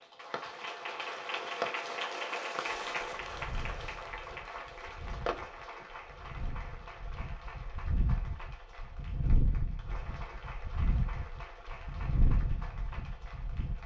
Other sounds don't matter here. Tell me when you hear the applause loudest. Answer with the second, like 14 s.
2 s.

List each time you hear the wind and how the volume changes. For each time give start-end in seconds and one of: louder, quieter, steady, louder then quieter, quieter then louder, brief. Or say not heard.
2.7-13.8 louder.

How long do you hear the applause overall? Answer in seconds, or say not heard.
14 s.